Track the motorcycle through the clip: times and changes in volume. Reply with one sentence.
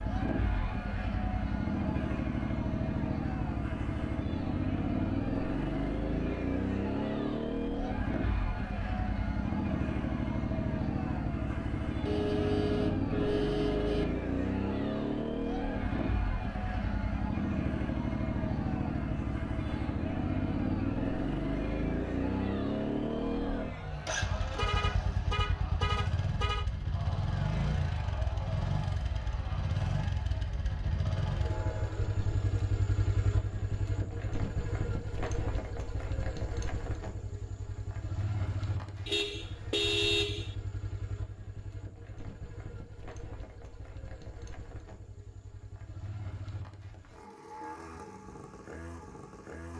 The motorcycle can be heard from 0.0 to 49.7 s, getting quieter.